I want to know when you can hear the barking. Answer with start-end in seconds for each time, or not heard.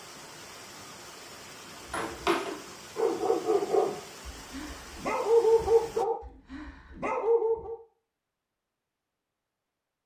1.9-7.8.